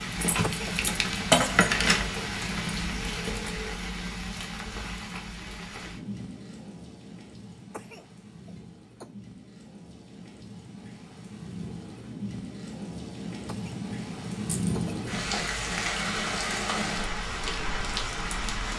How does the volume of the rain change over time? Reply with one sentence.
The volume of the rain goes down, then up.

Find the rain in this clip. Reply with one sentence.
The rain can be heard from 0.0 to 18.7 s.